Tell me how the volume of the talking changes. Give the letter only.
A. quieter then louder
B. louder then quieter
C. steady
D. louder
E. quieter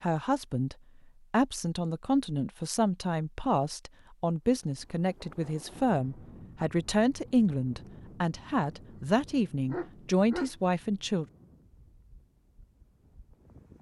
C.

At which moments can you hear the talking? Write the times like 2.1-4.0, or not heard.
0.0-11.2.